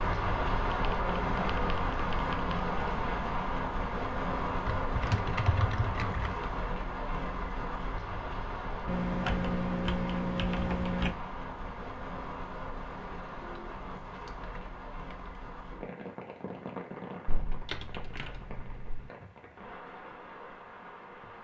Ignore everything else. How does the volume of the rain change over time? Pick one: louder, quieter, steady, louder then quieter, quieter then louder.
quieter.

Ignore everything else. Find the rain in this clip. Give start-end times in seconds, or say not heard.
0.0-21.3.